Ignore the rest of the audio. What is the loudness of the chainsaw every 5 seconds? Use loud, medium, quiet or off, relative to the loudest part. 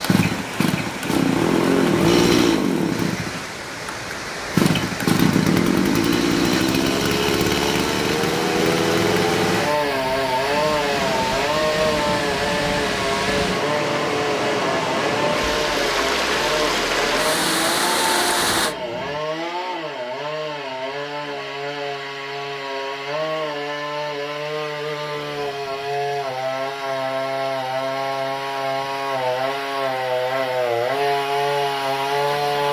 loud, loud, loud, medium, medium, medium, loud.